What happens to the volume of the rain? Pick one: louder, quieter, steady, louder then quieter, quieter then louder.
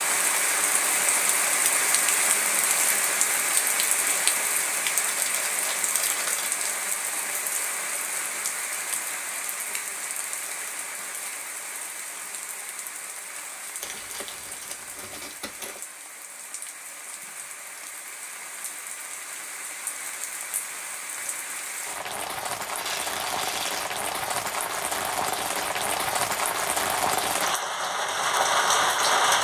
quieter then louder.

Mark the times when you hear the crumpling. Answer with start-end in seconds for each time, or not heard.
5.0-6.5, 13.8-15.8, 22.8-23.9.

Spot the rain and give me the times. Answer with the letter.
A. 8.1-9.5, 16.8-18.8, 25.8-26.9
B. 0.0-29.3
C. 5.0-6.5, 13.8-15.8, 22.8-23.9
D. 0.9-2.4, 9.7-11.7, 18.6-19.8
B.